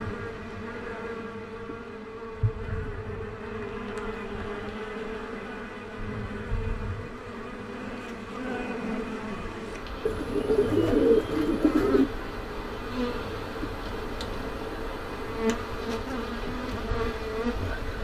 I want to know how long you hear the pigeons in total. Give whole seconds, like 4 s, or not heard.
2 s.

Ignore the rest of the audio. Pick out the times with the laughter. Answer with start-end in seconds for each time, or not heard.
not heard.